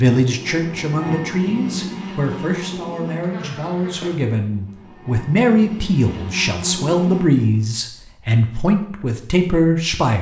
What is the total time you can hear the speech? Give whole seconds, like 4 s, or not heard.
10 s.